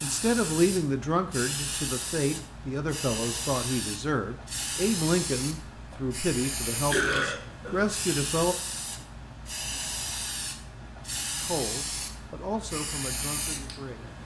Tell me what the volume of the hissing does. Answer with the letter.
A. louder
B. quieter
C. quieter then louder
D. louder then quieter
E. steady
E.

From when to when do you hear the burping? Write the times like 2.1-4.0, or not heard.
6.9-8.0.